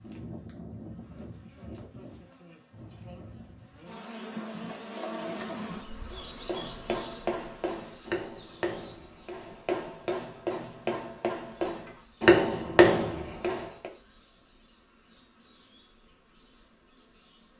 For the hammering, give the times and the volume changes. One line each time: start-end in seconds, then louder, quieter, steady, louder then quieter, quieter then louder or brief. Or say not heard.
6.1-13.9 louder.